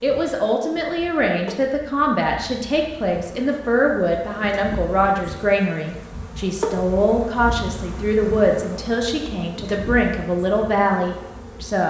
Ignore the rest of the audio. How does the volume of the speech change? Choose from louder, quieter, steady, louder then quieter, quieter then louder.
steady.